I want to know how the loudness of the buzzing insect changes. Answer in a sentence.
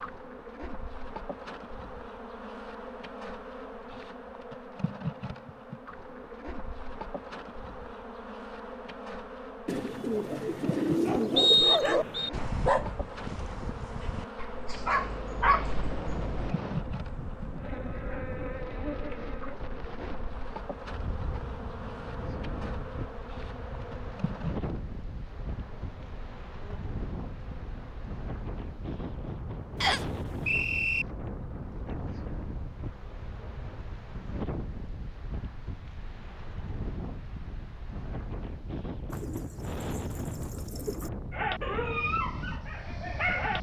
The loudness of the buzzing insect goes down.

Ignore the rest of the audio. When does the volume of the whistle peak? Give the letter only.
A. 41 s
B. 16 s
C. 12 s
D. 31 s
C.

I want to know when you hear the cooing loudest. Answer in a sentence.
The volume of the cooing peaks at 11 seconds.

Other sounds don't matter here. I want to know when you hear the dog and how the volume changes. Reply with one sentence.
You can hear the dog from 11.0 to 16.6 s, getting quieter then louder; and briefly from 41.3 to 43.5 s.